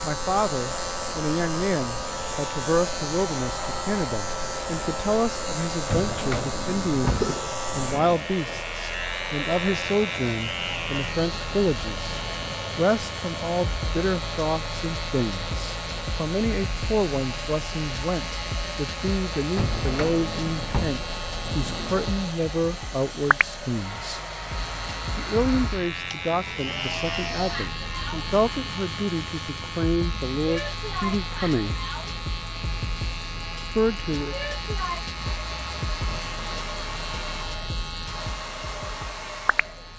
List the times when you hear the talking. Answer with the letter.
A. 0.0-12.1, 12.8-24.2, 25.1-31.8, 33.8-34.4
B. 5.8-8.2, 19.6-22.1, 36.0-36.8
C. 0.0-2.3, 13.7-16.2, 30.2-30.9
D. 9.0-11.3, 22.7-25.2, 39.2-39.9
A.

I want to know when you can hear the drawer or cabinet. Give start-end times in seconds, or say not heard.
5.8-8.2, 19.6-22.1, 36.0-36.8.